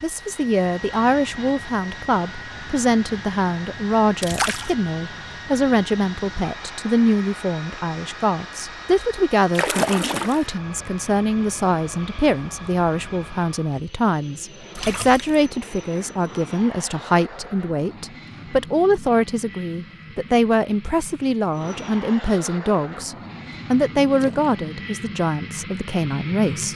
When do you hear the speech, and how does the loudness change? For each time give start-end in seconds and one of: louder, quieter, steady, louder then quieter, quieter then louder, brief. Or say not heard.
0.0-26.7 steady.